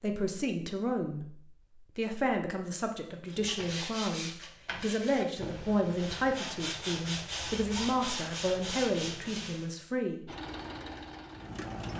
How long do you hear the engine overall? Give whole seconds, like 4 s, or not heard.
2 s.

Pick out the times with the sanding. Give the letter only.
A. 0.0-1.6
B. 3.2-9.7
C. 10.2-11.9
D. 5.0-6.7
B.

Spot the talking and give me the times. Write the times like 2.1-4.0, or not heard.
0.0-1.4, 1.9-10.3.